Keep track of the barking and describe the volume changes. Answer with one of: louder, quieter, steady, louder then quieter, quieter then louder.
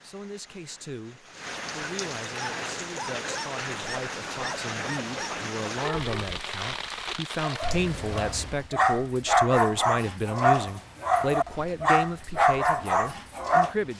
louder.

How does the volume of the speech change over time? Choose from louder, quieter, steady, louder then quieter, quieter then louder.
louder.